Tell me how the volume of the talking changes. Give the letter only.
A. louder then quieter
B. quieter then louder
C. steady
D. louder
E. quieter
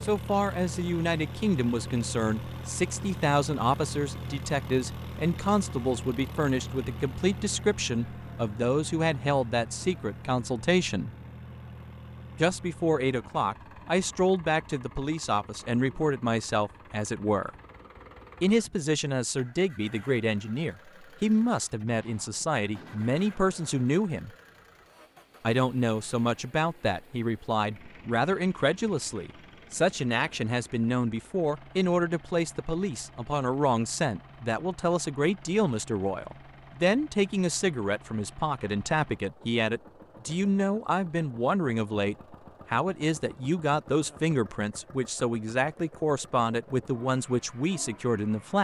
C.